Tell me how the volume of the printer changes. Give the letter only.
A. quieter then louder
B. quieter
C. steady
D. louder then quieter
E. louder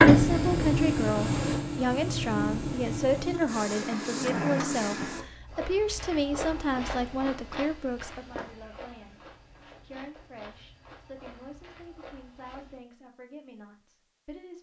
B.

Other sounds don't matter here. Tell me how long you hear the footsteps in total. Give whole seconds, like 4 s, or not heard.
7 s.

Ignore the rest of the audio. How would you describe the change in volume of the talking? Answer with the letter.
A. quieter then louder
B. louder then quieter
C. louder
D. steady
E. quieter
E.